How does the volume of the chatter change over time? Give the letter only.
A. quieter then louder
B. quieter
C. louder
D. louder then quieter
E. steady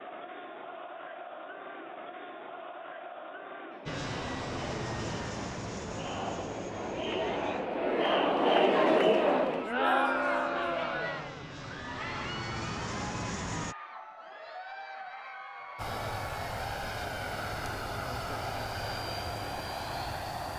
D.